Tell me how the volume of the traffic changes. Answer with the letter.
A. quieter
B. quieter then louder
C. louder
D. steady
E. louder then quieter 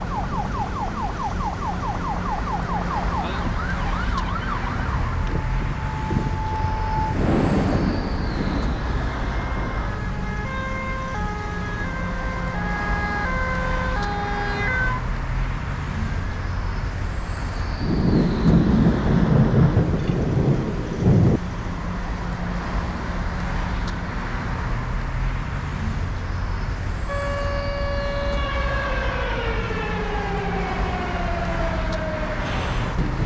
D.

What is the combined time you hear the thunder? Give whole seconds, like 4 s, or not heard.
7 s.